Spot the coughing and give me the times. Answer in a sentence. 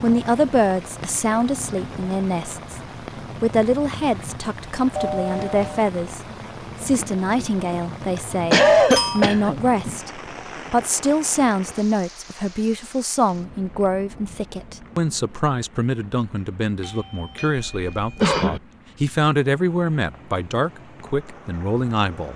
The coughing can be heard from 8.2 to 9.6 s and from 17.7 to 18.6 s.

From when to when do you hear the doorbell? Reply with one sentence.
The doorbell can be heard from 5.0 to 5.8 s, from 8.9 to 9.3 s and from 16.8 to 18.3 s.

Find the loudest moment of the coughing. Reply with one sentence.
The loudest moment of the coughing is at 9 seconds.